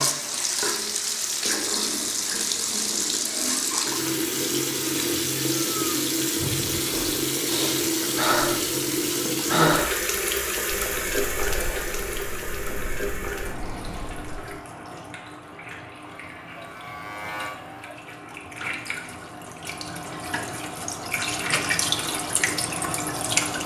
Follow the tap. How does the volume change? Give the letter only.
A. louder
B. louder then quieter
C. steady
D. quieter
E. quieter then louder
E.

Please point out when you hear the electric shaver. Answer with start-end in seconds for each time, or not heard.
16.2-17.9.